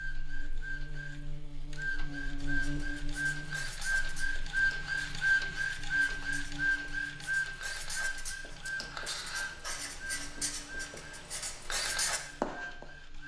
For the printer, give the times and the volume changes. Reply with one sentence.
The printer can be heard from 0.0 to 13.2 s, getting louder then quieter.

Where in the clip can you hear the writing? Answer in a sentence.
The writing can be heard from 2.4 to 12.8 s.